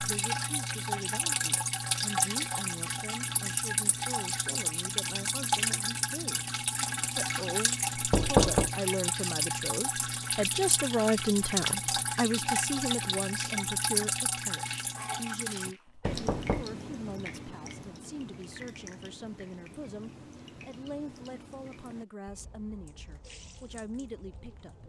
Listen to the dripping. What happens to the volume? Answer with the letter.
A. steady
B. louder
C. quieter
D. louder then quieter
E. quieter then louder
C.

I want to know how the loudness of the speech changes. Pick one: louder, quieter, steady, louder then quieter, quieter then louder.
louder then quieter.